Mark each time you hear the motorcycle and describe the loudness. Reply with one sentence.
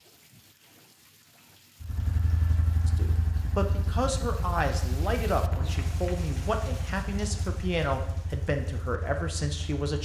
The motorcycle can be heard from 1.8 to 10.0 s, getting quieter.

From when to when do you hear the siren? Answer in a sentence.
The siren can't be heard in this clip.